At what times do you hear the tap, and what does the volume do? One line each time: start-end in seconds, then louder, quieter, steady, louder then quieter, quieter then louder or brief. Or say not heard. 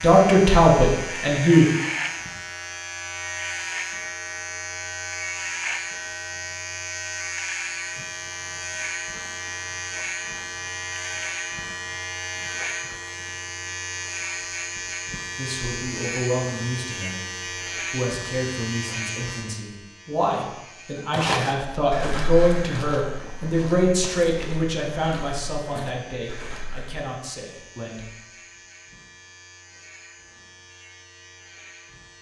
not heard.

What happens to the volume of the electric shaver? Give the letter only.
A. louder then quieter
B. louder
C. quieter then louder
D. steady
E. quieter
E.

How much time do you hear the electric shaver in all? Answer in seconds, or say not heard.
32 s.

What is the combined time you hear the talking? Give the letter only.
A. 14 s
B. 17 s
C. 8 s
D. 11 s
A.